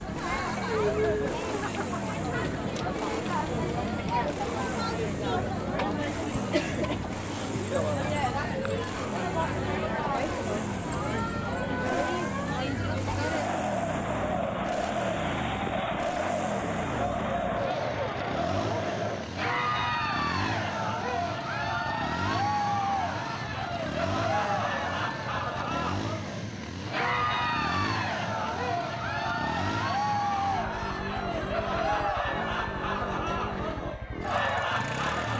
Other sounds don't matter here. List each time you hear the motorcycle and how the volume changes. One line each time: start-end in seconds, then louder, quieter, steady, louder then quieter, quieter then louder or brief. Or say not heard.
0.0-35.3 steady.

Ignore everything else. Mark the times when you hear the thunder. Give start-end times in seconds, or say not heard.
not heard.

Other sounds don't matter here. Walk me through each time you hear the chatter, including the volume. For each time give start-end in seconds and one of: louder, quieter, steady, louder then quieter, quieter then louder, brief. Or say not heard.
0.0-35.3 steady.